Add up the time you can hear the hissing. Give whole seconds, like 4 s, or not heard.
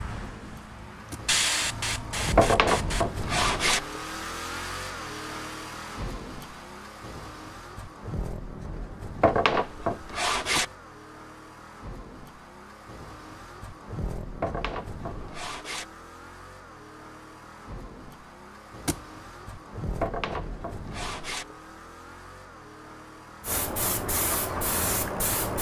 5 s.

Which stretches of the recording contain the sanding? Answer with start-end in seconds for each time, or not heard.
2.4-3.8, 9.2-10.7, 14.4-15.8, 20.0-21.4.